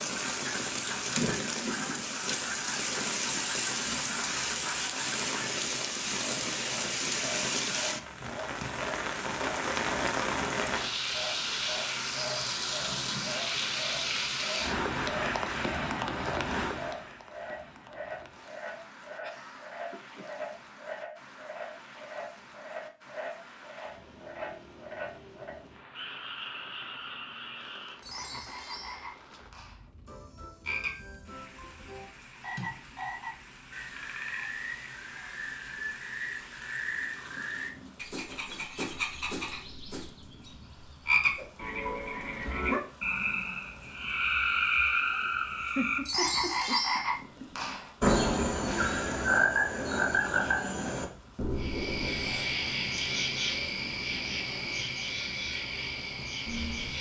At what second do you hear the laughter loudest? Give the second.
46 s.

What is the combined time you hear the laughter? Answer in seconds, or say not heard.
3 s.